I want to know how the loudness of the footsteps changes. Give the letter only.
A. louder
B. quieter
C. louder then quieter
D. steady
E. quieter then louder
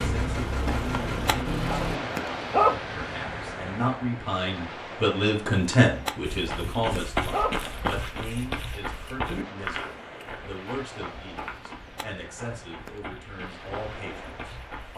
B.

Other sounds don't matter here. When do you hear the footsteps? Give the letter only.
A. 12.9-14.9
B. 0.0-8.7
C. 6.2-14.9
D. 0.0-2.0
C.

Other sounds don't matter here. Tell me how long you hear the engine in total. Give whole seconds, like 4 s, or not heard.
2 s.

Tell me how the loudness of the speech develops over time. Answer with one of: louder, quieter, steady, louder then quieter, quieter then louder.
louder then quieter.